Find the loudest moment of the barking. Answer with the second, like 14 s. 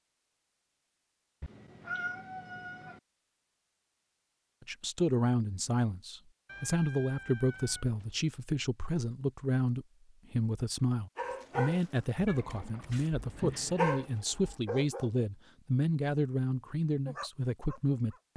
14 s.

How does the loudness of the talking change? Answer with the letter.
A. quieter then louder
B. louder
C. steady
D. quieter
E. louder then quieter
C.